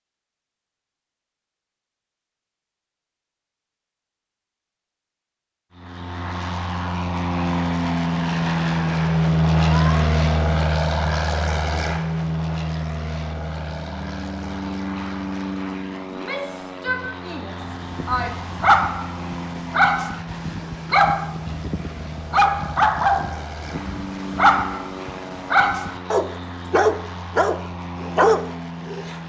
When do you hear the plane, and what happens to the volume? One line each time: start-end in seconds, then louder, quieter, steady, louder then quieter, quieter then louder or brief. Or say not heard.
5.7-29.2 quieter.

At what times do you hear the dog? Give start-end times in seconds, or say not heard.
17.6-29.1.